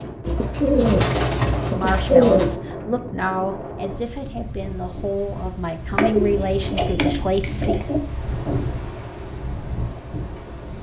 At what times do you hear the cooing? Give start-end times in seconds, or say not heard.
0.2-2.5, 6.0-8.0.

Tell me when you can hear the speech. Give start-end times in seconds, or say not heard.
1.6-7.8.